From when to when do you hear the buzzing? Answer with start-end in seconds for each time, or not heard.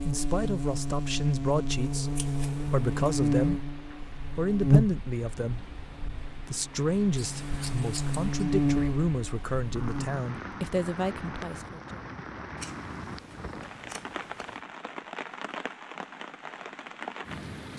0.0-10.1.